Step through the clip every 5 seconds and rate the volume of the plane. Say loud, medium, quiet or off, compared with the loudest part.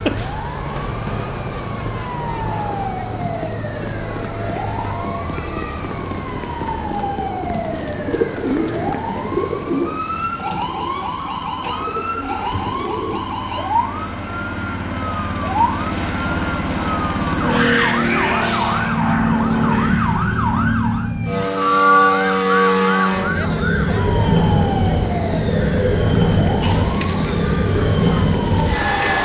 quiet, quiet, quiet, loud, loud, loud.